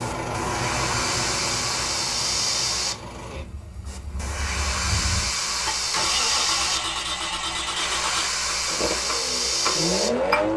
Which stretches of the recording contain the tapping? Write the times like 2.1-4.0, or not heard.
8.4-10.4.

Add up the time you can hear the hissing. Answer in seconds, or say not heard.
10 s.